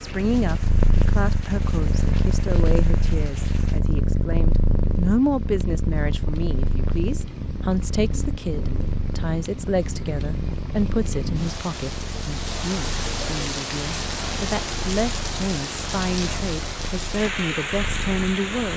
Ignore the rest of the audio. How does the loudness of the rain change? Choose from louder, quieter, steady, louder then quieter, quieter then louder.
louder.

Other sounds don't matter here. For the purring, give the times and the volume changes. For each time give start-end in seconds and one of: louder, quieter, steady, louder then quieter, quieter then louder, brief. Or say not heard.
0.0-18.7 quieter.